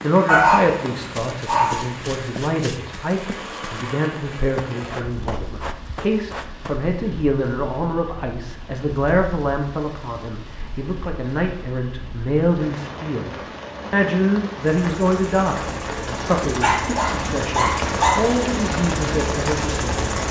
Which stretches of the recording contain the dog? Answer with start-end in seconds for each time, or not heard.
0.2-1.9, 16.6-18.4.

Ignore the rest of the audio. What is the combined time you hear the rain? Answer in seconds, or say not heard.
20 s.